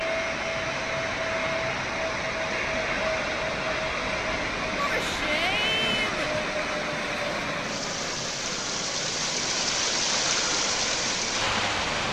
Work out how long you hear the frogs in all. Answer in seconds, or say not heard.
not heard.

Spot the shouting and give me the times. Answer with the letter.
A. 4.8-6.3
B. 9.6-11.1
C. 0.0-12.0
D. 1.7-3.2
A.